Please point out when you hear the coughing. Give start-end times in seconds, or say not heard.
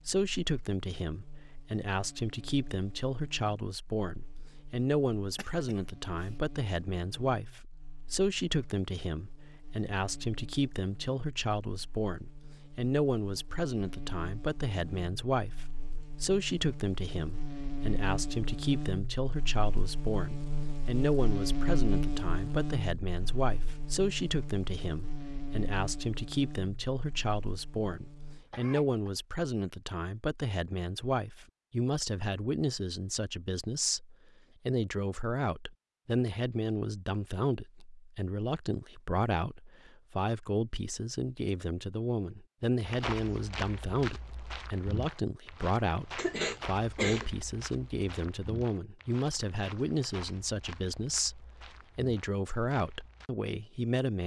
5.2-6.3, 28.2-29.1, 46.1-47.2.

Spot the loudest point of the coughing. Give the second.
47 s.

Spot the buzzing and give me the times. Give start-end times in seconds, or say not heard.
0.0-28.4.